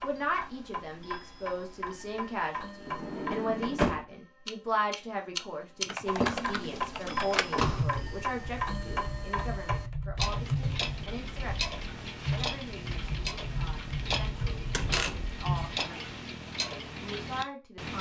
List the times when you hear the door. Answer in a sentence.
The door can be heard from 2.9 to 4.0 s, from 6.2 to 7.8 s and from 14.7 to 15.3 s.